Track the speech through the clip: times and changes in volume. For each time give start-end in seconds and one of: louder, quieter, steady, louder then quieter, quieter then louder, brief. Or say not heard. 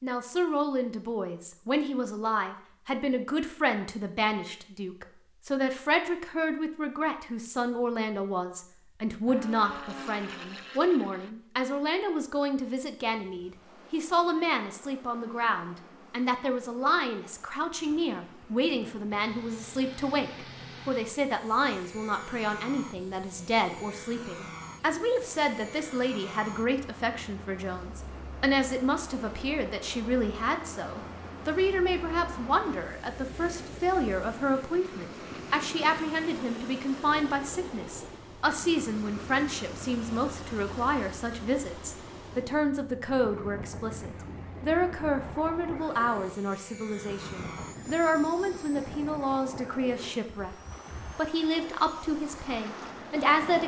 0.0-50.5 steady
51.1-53.6 brief.